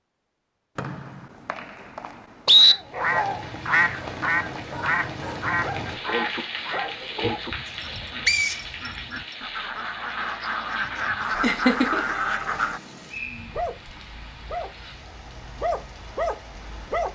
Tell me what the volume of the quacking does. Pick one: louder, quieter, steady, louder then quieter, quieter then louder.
quieter then louder.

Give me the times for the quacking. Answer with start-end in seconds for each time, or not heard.
2.6-12.8.